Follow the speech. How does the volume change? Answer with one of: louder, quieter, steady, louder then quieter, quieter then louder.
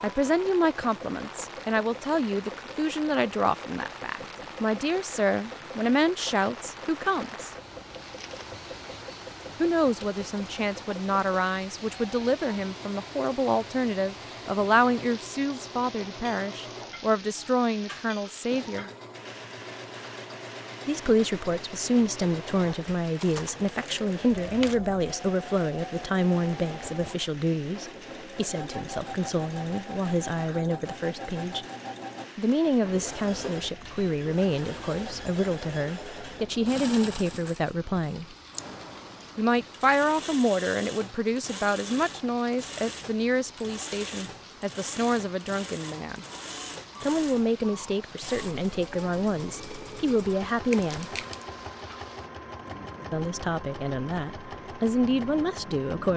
steady.